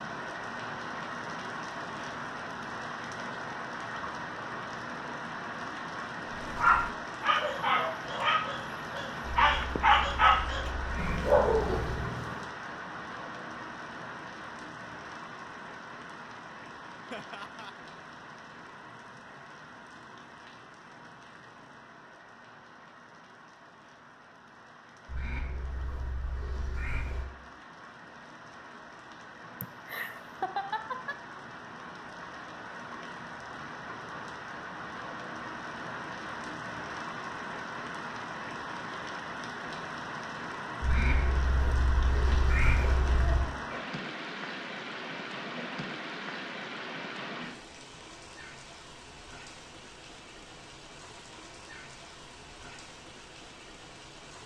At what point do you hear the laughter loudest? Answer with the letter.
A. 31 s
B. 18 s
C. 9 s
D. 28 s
A.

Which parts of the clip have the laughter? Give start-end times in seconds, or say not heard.
17.1-17.8, 29.6-31.2.